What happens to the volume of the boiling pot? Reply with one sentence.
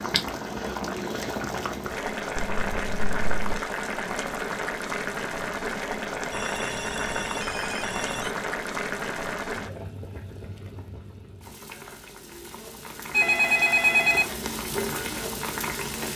The loudness of the boiling pot goes down, then up.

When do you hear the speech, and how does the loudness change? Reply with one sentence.
The speech can't be heard in this clip.